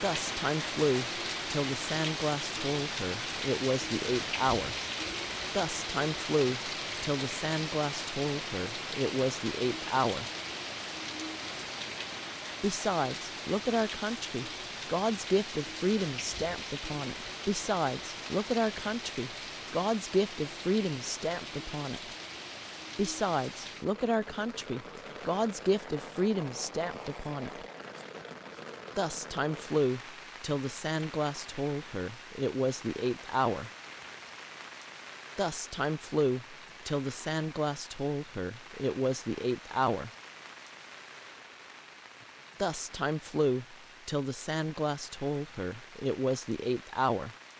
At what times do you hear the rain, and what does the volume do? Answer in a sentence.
You can hear the rain from 0.0 to 47.5 s, getting quieter.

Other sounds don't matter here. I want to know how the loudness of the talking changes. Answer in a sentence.
The loudness of the talking stays about the same.